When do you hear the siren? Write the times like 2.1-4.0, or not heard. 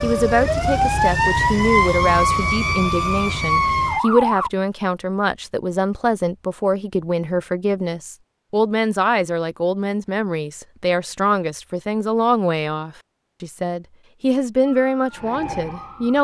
0.0-4.5, 14.9-16.2.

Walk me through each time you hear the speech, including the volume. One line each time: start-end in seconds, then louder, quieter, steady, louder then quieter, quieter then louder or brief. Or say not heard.
0.0-16.2 steady.